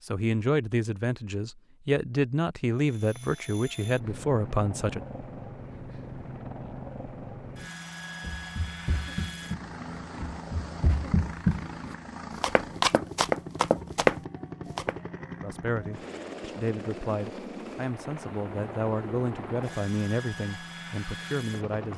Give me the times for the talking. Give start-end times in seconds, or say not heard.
0.1-5.0, 15.4-21.9.